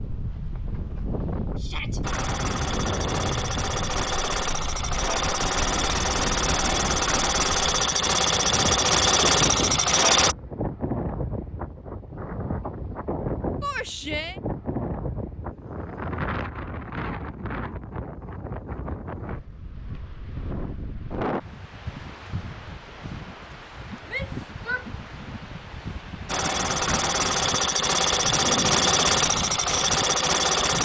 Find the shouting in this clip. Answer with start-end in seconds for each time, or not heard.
1.6-2.0, 13.6-14.4, 24.1-24.9.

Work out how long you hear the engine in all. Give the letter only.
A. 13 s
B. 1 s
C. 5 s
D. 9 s
A.